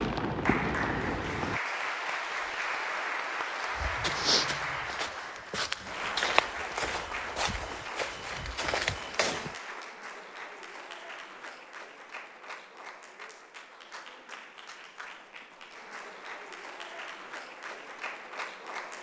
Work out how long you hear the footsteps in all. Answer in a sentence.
You can hear the footsteps for 6 seconds altogether.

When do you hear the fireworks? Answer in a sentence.
The fireworks can be heard from 0.0 to 1.6 s.